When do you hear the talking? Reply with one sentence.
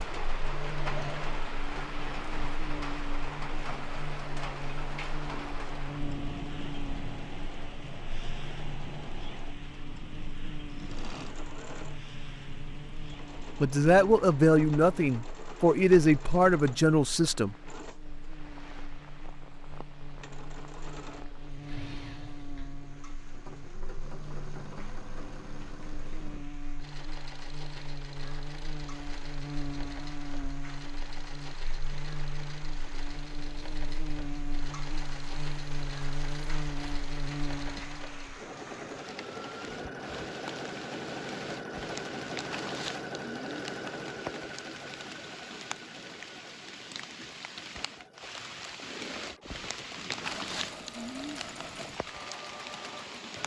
The talking can be heard from 13.6 to 17.6 s.